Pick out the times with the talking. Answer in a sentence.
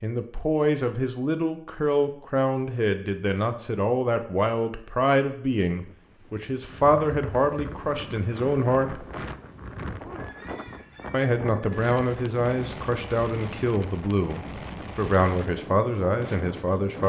You can hear the talking from 0.0 to 9.1 s and from 11.1 to 17.0 s.